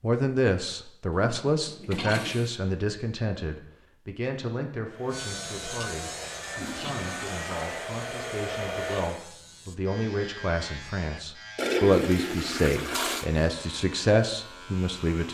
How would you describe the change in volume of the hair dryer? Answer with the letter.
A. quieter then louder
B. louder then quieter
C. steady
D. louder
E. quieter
D.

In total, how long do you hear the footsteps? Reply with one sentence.
You can't hear the footsteps here.